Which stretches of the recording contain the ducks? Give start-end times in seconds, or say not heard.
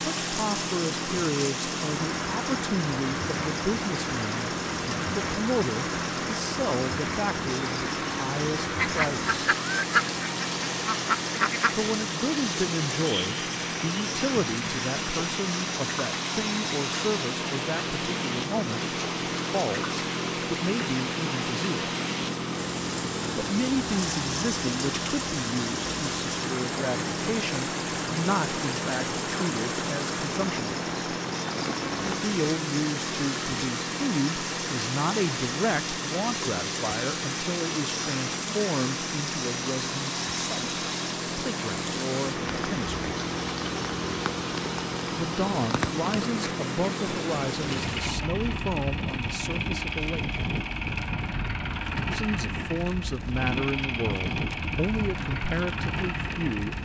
8.8-11.8.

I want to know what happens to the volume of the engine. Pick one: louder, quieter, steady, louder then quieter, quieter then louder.
steady.